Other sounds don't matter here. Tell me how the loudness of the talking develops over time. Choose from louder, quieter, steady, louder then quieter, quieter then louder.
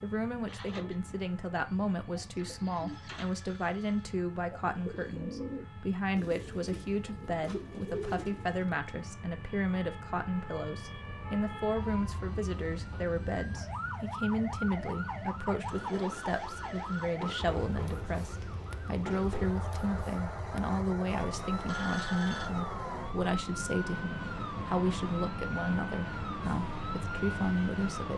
steady.